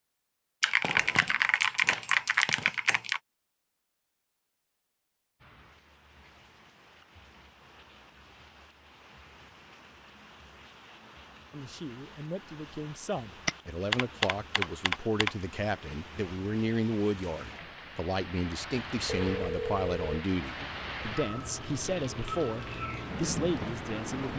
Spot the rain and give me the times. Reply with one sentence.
The rain can be heard from 5.4 to 24.3 s.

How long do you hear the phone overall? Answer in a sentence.
The phone can be heard for 3 seconds in total.